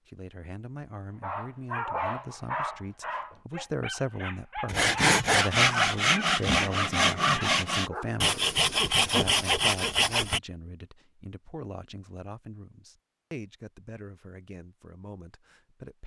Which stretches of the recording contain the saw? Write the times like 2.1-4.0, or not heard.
4.7-10.4.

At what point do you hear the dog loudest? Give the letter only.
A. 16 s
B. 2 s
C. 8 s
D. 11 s
B.